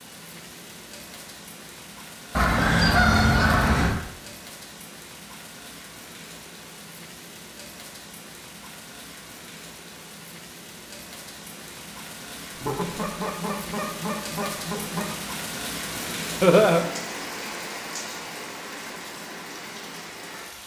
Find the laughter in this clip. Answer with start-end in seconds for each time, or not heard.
16.4-16.9.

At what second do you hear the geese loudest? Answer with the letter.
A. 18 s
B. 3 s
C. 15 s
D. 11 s
B.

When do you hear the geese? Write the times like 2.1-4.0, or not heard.
2.4-4.0, 12.6-15.1.